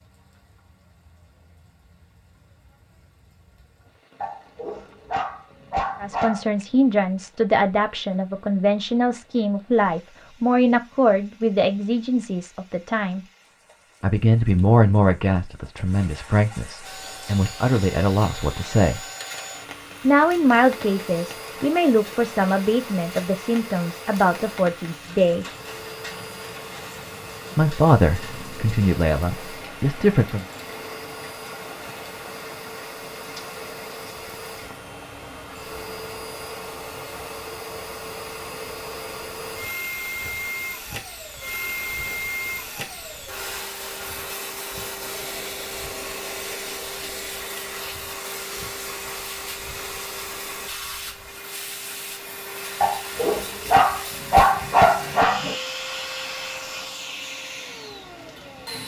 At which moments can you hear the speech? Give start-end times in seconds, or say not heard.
6.0-13.2, 14.0-19.0, 20.0-25.4, 27.6-30.4.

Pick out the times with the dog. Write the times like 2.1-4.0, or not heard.
4.2-6.5, 52.8-55.5.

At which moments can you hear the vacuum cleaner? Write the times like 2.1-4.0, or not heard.
16.8-58.8.